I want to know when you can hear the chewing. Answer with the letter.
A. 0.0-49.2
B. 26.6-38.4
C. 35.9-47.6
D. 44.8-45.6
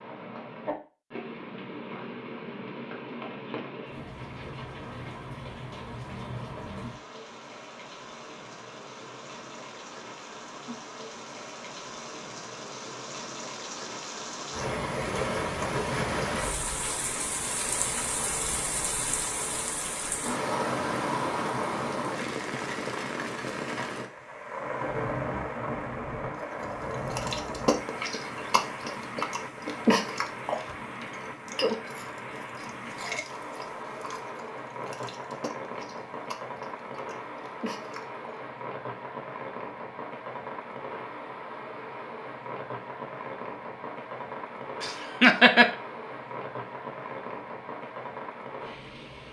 B.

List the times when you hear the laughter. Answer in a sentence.
You can hear the laughter from 44.8 to 45.6 s.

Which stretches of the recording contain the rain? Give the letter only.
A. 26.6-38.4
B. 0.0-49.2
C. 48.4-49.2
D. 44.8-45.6
B.